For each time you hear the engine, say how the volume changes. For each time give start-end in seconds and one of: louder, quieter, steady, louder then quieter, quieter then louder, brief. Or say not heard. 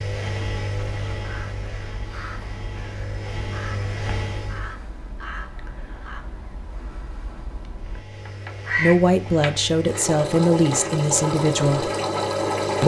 0.0-4.8 quieter then louder
7.7-12.8 louder.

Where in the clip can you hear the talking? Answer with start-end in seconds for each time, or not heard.
8.8-11.9.